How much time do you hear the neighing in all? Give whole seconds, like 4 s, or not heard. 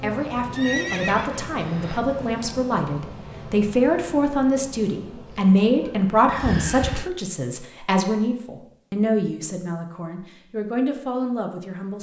3 s.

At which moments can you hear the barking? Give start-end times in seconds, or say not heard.
not heard.